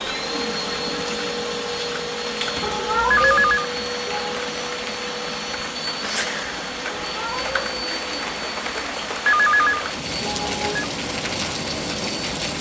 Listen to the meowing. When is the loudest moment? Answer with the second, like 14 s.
3 s.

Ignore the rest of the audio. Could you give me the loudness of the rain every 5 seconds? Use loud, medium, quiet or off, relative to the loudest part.
medium, loud, loud.